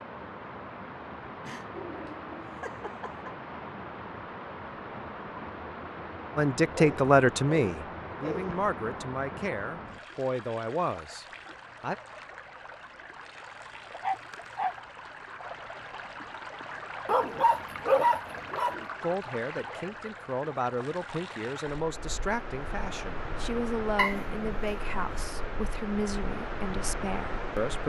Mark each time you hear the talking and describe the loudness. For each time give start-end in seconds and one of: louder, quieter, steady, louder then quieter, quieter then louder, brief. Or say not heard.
6.3-11.9 quieter
19.0-27.8 steady.